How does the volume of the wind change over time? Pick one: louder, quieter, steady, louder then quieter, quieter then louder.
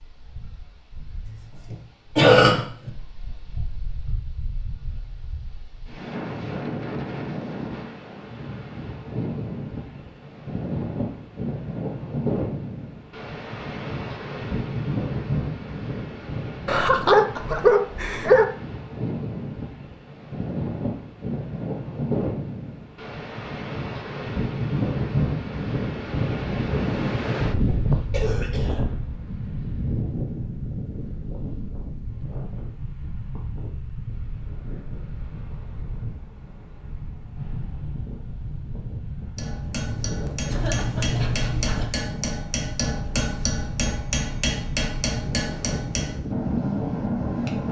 louder then quieter.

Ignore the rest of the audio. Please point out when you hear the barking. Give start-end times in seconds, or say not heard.
16.6-18.5, 40.5-41.9.